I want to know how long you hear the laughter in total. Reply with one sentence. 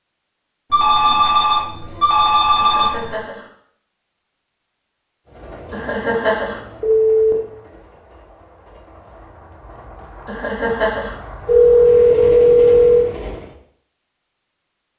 You can hear the laughter for 3 seconds altogether.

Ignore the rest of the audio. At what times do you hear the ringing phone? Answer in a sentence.
The ringing phone can be heard from 0.7 to 3.1 s, from 6.8 to 7.3 s and from 11.4 to 13.1 s.